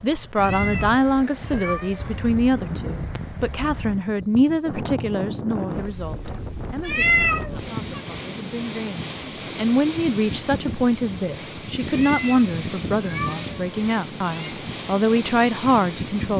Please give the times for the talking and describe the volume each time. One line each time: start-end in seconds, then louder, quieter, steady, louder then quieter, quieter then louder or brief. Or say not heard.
0.0-16.3 quieter then louder.